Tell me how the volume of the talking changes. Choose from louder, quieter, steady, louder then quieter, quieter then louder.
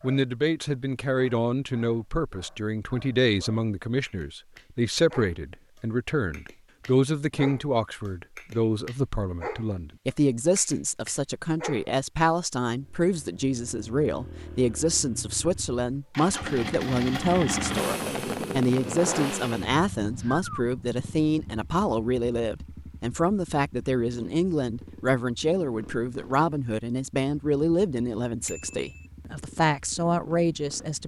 steady.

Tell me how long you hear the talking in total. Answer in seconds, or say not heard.
31 s.